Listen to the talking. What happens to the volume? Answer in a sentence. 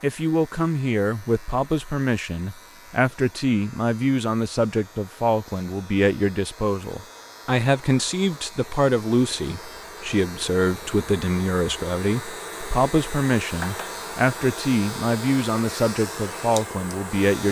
The loudness of the talking stays about the same.